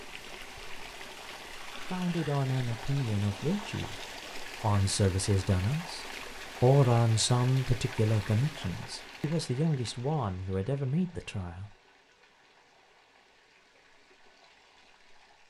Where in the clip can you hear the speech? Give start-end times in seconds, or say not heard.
1.9-11.8.